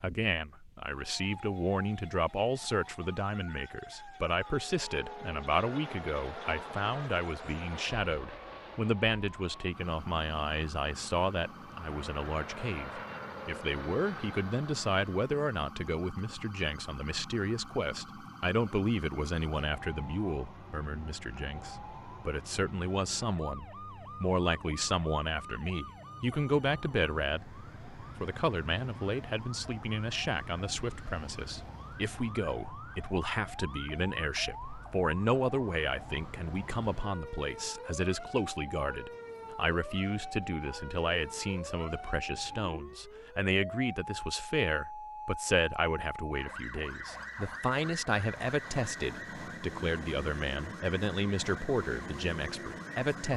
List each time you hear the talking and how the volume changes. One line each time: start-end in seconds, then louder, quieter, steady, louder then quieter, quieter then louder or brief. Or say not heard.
0.0-53.3 steady.